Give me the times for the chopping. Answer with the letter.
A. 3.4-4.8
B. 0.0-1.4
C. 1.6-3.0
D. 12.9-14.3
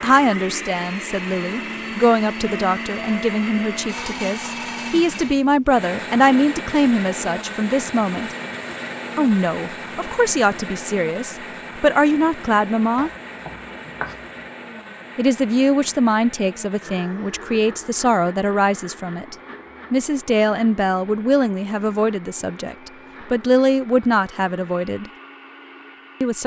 D.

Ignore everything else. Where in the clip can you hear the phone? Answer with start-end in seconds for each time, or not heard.
not heard.